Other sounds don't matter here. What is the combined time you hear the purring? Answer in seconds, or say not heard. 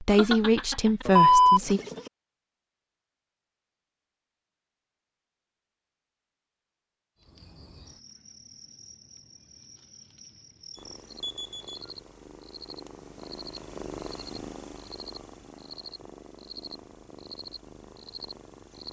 8 s.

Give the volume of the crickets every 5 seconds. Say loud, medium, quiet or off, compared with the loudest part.
off, medium, loud, loud.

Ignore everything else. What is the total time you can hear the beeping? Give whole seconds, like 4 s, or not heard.
3 s.